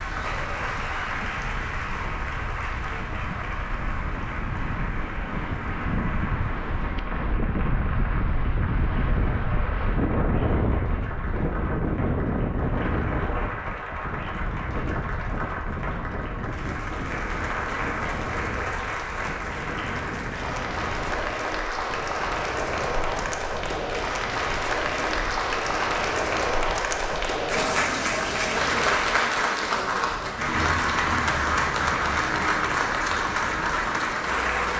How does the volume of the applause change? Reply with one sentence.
The loudness of the applause goes up.